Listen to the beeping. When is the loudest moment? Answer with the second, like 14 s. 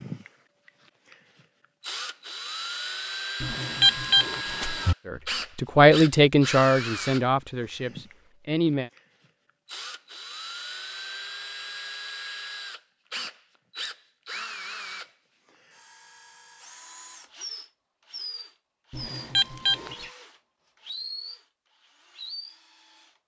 4 s.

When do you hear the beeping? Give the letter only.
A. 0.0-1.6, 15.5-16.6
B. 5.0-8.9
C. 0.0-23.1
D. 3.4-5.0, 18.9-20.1
D.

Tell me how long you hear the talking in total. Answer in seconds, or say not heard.
4 s.